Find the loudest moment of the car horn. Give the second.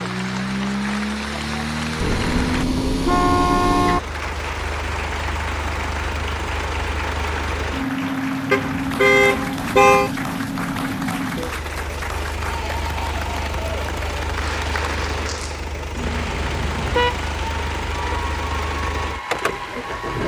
10 s.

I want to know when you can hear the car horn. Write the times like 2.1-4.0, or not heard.
2.0-4.0, 8.5-10.1, 15.9-18.1.